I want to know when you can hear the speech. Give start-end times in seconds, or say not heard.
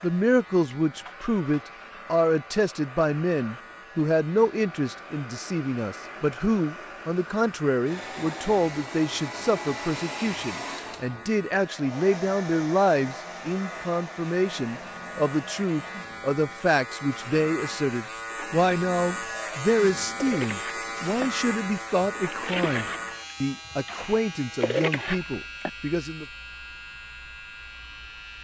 0.0-26.2.